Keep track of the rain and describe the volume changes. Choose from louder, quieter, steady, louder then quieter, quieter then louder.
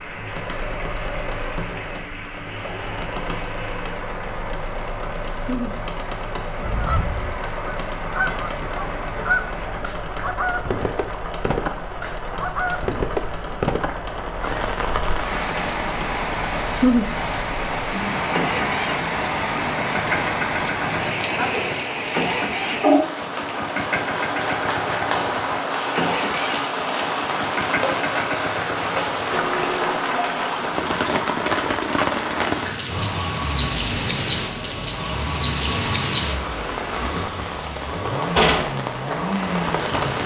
louder.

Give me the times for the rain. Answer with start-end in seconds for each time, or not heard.
0.0-40.2.